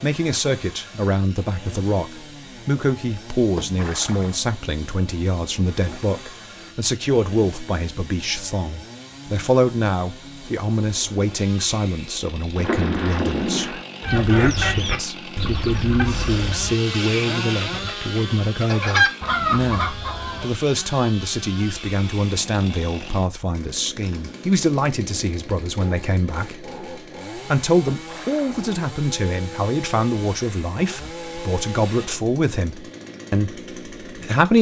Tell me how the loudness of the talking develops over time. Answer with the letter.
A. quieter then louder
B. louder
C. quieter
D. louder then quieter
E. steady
E.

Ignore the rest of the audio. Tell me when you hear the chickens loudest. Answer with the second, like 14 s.
19 s.